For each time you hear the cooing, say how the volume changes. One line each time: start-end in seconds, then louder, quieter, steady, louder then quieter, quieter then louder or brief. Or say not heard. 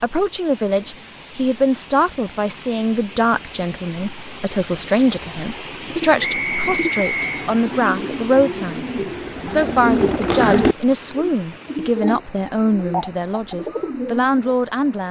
5.8-14.5 louder then quieter.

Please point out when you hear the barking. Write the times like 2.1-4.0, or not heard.
not heard.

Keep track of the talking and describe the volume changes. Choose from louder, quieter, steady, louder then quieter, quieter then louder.
steady.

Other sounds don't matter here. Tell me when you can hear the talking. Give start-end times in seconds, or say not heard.
0.0-15.0.